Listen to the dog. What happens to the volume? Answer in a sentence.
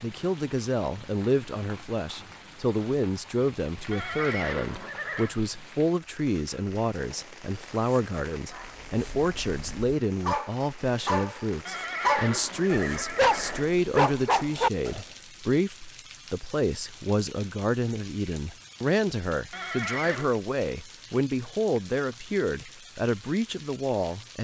The volume of the dog goes up.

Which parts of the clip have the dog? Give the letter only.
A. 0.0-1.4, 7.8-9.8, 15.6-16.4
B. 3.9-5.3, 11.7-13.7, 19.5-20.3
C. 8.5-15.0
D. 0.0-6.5
C.